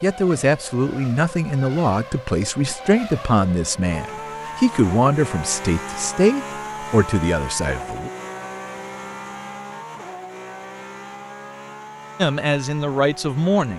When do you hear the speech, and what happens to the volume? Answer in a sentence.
The speech can be heard from 0.0 to 8.1 s, at a steady volume; and briefly from 12.2 to 13.7 s.